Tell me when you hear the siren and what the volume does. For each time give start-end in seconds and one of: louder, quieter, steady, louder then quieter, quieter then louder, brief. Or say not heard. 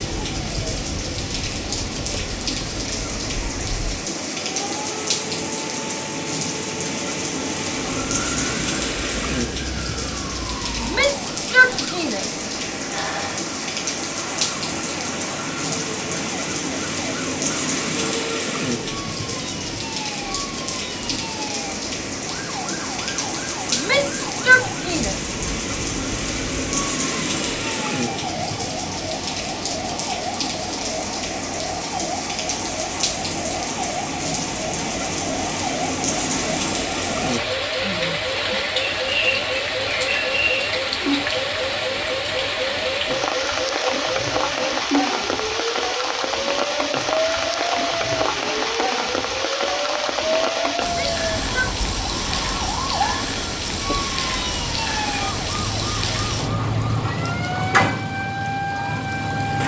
0.0-59.6 louder.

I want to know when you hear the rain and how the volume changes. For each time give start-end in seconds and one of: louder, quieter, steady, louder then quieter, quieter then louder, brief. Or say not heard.
0.0-59.6 steady.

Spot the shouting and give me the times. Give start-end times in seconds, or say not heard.
10.8-12.4, 23.7-25.4, 50.8-51.8.